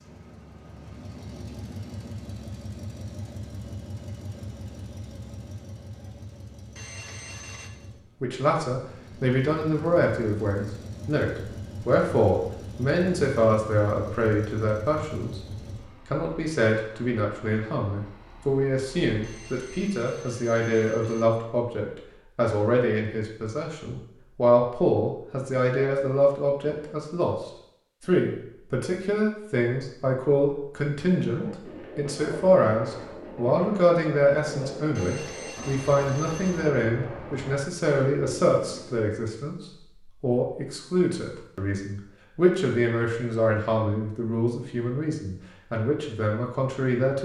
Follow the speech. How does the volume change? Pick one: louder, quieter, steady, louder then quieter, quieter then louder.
steady.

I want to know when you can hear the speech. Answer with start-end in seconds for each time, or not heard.
8.2-15.4, 16.1-47.2.